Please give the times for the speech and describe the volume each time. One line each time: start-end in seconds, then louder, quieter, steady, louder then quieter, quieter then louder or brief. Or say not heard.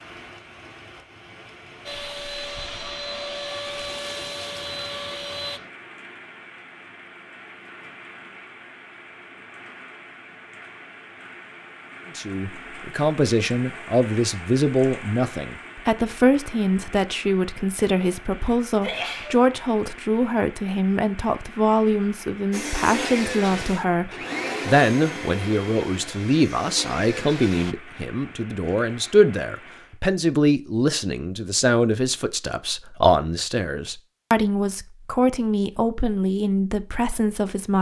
12.2-37.7 steady.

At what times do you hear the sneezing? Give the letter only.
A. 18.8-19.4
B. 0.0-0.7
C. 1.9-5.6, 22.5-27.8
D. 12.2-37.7
A.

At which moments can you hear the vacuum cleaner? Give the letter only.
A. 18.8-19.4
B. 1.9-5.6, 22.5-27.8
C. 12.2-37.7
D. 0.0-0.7
B.